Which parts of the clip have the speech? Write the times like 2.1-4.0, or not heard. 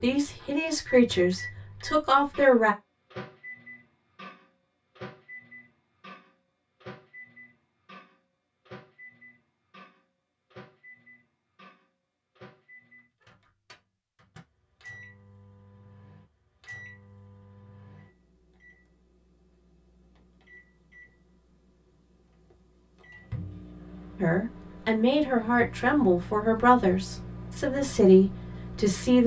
0.0-2.8, 24.2-29.2.